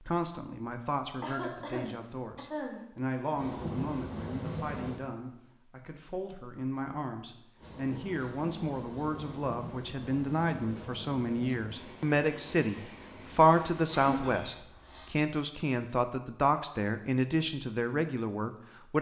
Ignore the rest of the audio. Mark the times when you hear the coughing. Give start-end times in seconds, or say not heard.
1.2-2.8, 13.9-15.2.